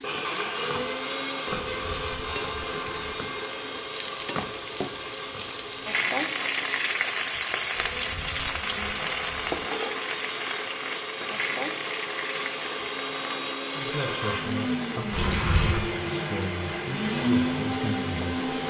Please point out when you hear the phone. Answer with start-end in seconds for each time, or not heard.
not heard.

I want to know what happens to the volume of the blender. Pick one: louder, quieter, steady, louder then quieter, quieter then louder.
quieter then louder.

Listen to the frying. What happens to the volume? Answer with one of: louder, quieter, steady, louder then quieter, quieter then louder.
louder then quieter.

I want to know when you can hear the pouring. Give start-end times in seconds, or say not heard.
1.6-3.1, 7.8-9.6, 15.1-15.9.